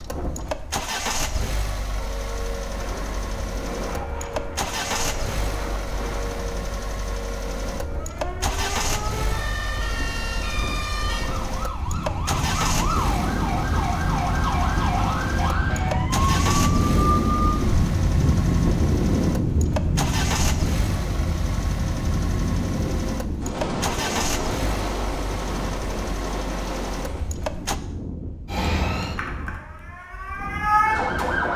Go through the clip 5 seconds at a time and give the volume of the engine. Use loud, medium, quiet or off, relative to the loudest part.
loud, loud, loud, loud, loud, loud, off.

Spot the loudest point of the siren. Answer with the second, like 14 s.
31 s.